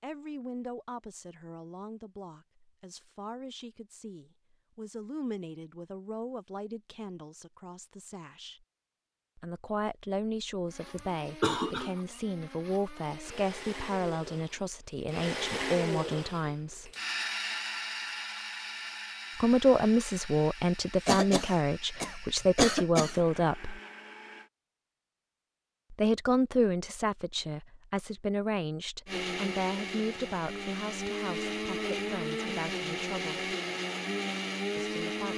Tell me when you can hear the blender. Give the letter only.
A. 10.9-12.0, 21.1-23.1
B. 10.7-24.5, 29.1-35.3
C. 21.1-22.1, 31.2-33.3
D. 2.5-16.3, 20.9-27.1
B.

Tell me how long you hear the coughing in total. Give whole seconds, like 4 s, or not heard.
3 s.